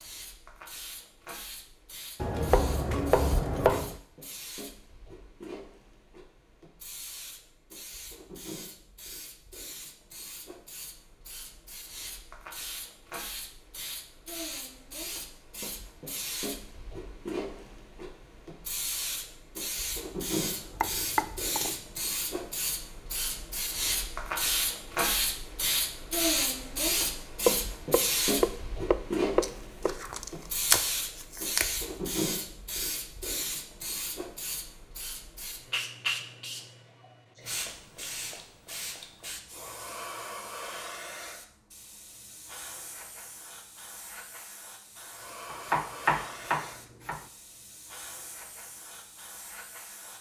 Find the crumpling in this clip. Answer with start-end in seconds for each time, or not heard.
29.4-31.9.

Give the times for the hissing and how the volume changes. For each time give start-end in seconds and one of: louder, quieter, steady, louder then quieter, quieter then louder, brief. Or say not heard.
0.0-50.1 louder then quieter.